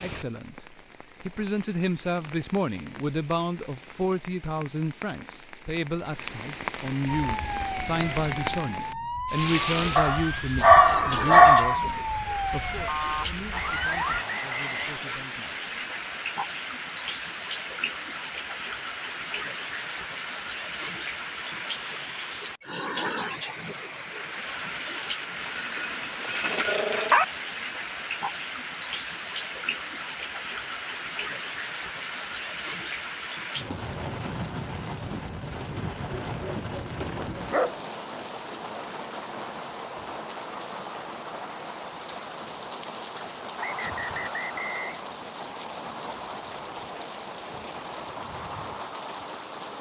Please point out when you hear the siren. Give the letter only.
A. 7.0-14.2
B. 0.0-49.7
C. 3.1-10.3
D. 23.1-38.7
A.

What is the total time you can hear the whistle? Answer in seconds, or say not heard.
3 s.